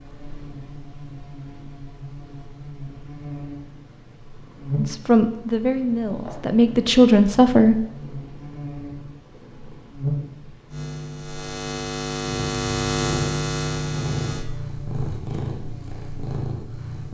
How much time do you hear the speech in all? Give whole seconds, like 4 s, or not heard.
3 s.